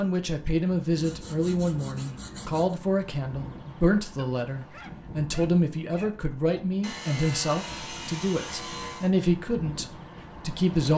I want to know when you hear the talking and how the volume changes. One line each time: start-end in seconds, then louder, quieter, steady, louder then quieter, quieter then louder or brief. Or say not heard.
0.0-10.9 steady.